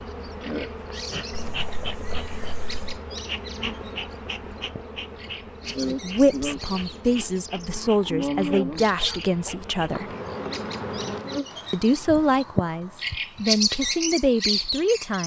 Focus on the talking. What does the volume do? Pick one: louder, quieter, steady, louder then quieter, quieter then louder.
steady.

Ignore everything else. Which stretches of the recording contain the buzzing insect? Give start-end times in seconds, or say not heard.
0.0-11.7.